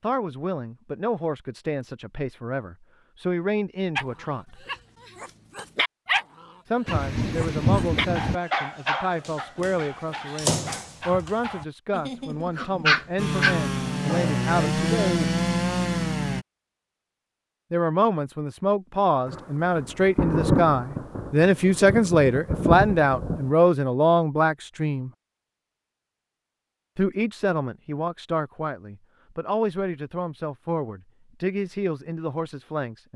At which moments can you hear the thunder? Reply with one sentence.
The thunder can be heard from 6.8 to 8.3 s and from 19.2 to 23.5 s.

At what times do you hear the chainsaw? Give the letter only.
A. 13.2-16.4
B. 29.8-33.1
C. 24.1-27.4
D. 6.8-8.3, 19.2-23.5
A.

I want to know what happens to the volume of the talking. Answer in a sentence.
The volume of the talking goes up, then down.